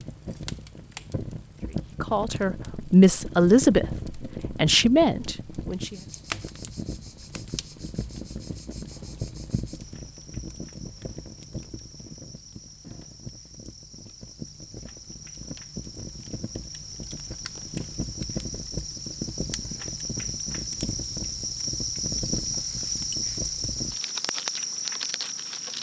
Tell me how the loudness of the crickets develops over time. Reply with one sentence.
The loudness of the crickets goes up.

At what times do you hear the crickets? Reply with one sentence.
The crickets can be heard from 5.8 to 25.7 s.